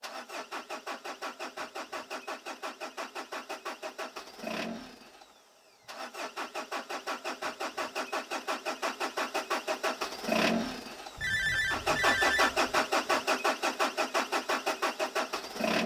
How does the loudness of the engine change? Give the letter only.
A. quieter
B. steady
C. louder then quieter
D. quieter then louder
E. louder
E.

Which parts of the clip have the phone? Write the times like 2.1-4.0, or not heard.
11.2-12.8.